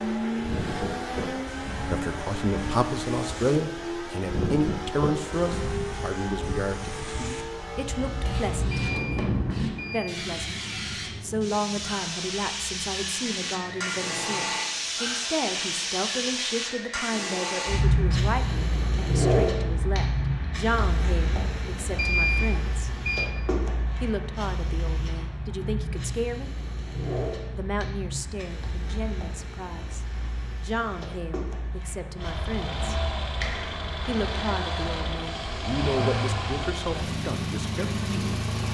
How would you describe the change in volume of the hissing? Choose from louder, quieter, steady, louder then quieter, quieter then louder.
louder then quieter.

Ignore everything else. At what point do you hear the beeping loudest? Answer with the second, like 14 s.
22 s.